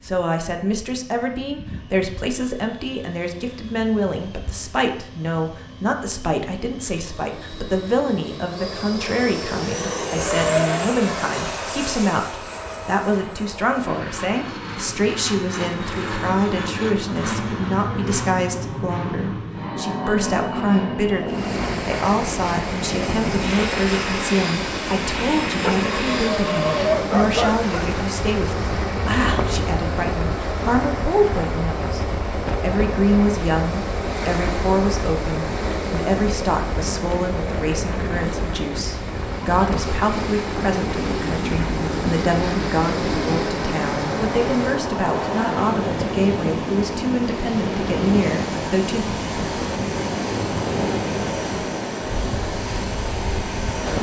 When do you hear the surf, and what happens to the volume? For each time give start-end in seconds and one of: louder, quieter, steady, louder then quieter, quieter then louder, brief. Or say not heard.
21.2-53.9 steady.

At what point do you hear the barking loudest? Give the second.
27 s.